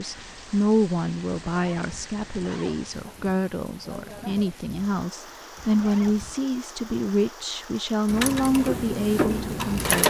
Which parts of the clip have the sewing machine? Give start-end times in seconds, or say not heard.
8.1-10.0.